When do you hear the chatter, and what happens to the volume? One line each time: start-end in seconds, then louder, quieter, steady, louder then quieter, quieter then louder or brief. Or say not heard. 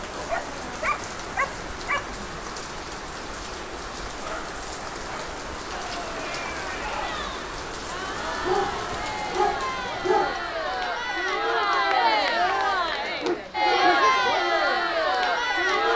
5.7-15.9 louder.